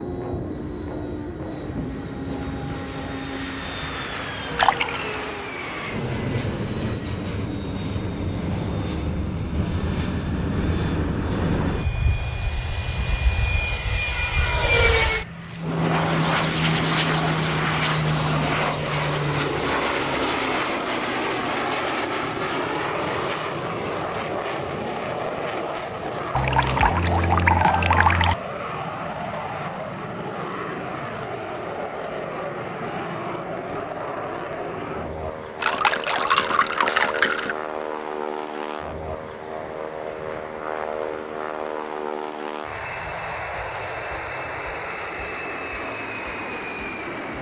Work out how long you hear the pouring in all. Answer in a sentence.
The pouring can be heard for 5 seconds in total.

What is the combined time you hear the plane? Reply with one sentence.
The plane can be heard for 47 seconds in total.